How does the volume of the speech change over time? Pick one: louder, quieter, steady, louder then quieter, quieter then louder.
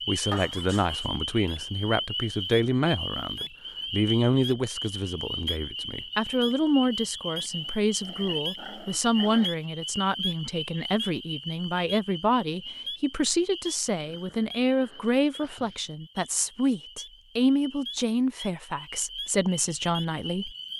steady.